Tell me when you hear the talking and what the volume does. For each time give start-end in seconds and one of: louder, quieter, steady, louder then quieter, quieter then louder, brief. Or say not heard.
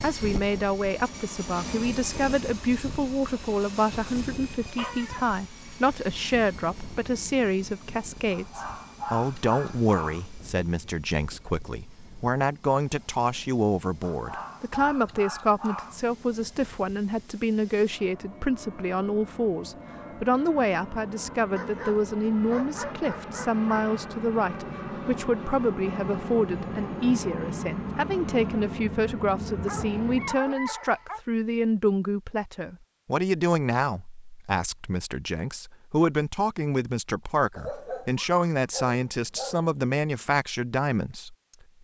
0.0-41.4 steady.